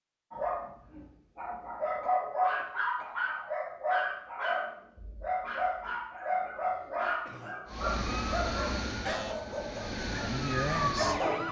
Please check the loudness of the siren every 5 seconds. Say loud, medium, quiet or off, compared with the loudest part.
off, medium, loud.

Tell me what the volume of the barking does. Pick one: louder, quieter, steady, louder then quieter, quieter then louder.
quieter.